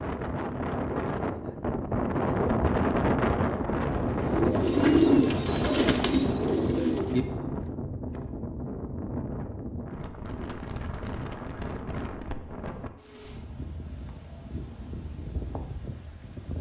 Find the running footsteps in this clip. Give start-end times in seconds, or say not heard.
not heard.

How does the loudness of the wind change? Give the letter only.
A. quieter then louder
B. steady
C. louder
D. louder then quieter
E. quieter
E.